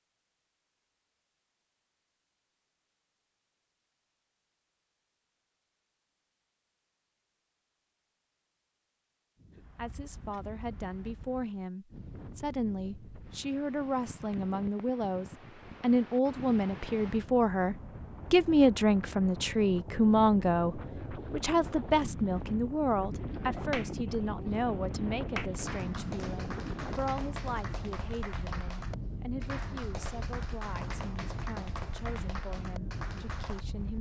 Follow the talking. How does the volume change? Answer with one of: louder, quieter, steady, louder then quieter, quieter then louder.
louder then quieter.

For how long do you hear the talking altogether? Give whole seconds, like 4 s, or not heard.
24 s.